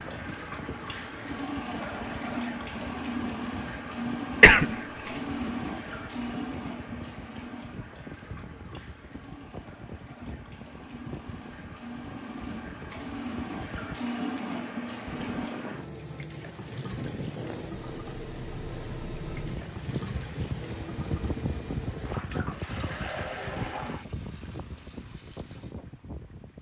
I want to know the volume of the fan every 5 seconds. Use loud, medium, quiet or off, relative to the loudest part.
medium, medium, medium, loud, loud, medium.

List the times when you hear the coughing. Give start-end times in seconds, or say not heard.
4.4-5.2.